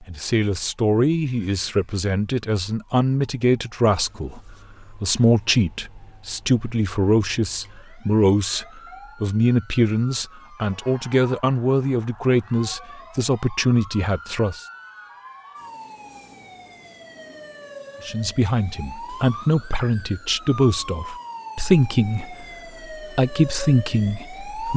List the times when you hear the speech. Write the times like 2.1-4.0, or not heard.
0.1-14.7, 18.1-24.7.